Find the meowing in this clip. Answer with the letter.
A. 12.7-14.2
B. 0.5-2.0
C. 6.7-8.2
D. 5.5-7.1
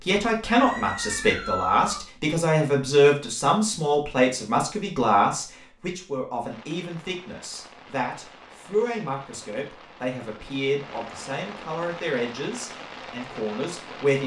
B.